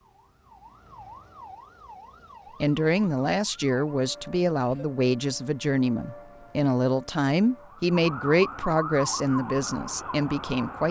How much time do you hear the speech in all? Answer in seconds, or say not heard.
8 s.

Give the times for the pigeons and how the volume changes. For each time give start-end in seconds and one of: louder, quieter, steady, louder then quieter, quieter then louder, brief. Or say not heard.
not heard.